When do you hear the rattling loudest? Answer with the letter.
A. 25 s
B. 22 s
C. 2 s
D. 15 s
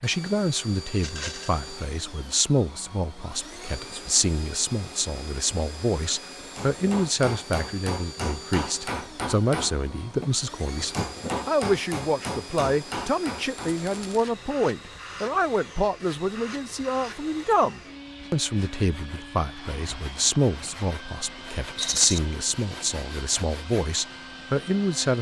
B.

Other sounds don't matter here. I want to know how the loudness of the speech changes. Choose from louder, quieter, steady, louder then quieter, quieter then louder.
steady.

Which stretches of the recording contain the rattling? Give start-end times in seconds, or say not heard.
1.0-1.6, 13.7-14.2, 21.8-22.2.